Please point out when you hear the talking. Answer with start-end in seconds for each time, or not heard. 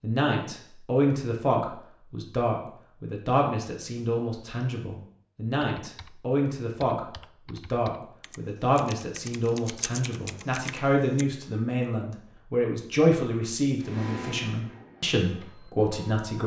0.0-16.4.